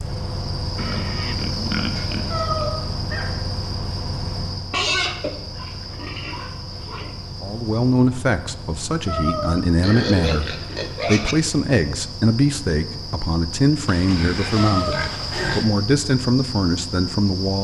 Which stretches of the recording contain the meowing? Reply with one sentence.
The meowing can be heard from 2.3 to 3.3 s, from 9.1 to 10.1 s and from 14.6 to 15.6 s.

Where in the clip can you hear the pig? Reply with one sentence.
The pig can be heard from 0.8 to 2.7 s, from 4.7 to 7.2 s, from 9.8 to 11.3 s and from 13.8 to 15.7 s.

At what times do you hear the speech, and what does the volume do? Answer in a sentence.
The speech can be heard from 7.4 to 17.5 s, at a steady volume.